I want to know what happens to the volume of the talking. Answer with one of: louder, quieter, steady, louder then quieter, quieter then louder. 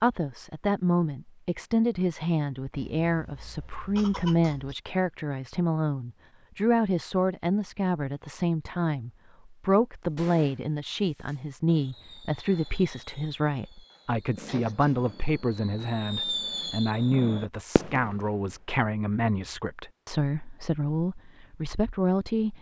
steady.